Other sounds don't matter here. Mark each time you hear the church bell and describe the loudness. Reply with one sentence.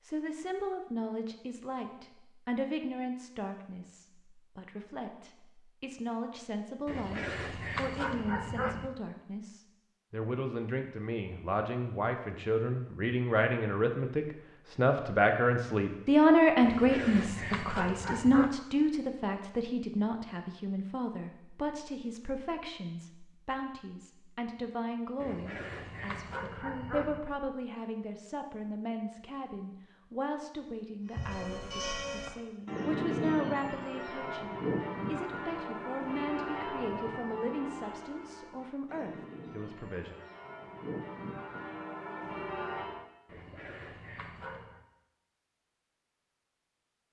You can hear the church bell from 31.1 to 43.0 s, getting quieter then louder.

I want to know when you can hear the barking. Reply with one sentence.
You can hear the barking from 6.8 to 8.9 s, from 16.6 to 18.6 s, from 25.2 to 27.2 s and from 43.2 to 44.8 s.